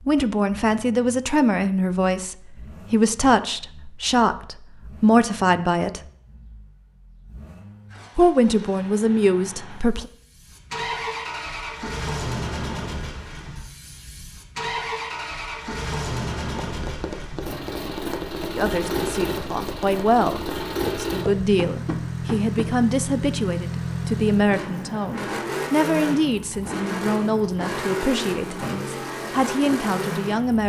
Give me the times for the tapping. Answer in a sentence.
The tapping can be heard from 16.6 to 22.6 s.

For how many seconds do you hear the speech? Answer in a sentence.
You can hear the speech for 20 seconds altogether.